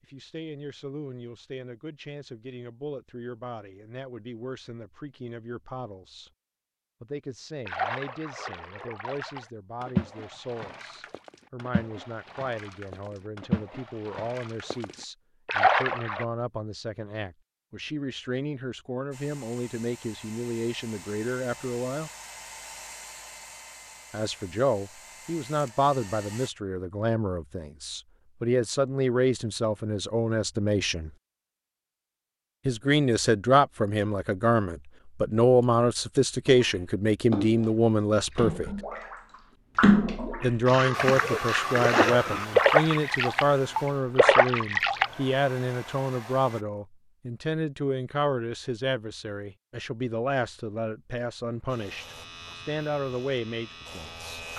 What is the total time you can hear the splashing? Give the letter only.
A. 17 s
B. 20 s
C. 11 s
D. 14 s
A.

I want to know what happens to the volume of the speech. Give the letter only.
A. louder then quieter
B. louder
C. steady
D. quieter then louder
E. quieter
A.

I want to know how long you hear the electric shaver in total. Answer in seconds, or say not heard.
3 s.